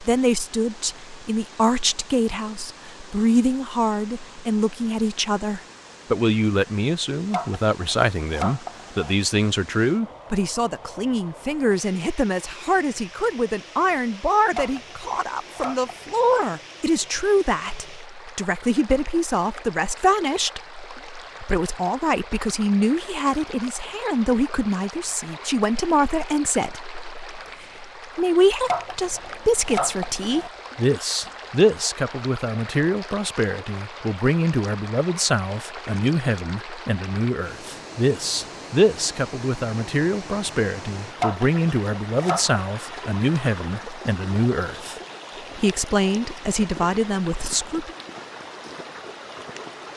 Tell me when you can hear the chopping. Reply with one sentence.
You can hear the chopping from 7.3 to 9.2 s, from 14.6 to 16.4 s, from 28.6 to 30.5 s and from 41.2 to 42.6 s.